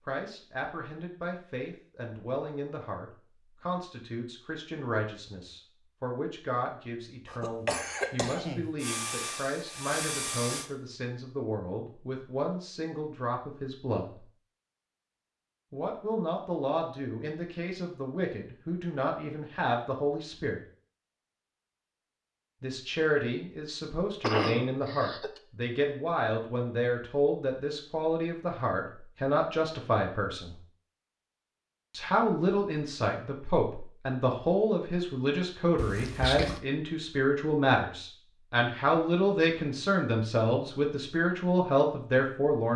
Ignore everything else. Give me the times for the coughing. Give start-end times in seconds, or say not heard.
7.2-8.7, 24.2-25.4, 35.8-36.6.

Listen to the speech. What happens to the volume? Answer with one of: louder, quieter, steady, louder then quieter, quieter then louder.
louder.